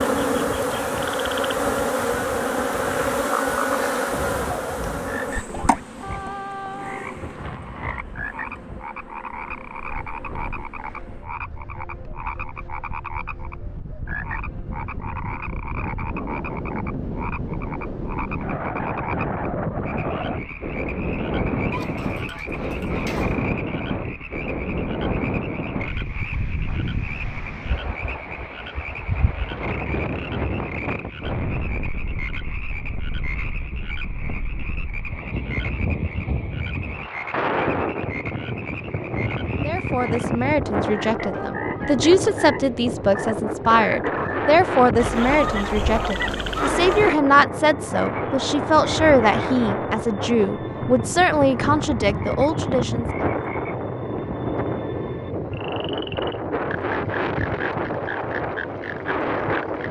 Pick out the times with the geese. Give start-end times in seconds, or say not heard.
21.7-23.5, 45.0-47.2.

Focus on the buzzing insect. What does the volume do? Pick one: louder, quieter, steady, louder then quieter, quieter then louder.
quieter.